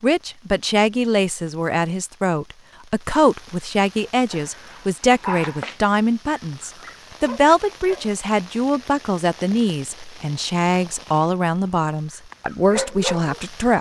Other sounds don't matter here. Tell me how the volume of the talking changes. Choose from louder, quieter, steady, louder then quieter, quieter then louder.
steady.